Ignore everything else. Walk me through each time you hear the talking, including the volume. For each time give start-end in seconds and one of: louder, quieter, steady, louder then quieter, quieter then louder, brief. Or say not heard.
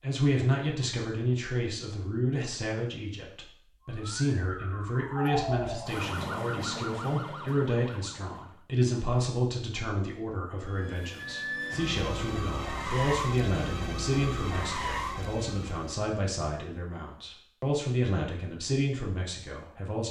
0.0-20.0 steady.